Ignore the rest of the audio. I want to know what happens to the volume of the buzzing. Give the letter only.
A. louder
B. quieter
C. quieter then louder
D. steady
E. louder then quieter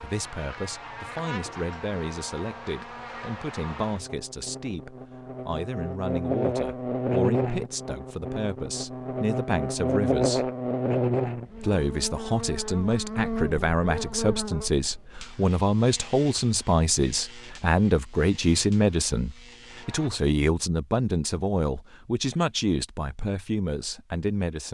E.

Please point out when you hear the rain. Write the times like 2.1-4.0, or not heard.
not heard.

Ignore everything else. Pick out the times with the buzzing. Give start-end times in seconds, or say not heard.
0.0-20.1.